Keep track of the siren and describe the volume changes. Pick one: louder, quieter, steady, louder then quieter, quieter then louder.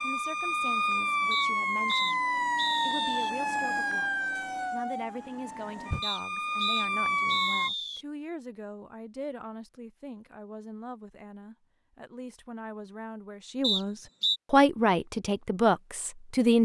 quieter then louder.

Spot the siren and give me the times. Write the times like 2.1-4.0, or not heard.
0.0-7.7.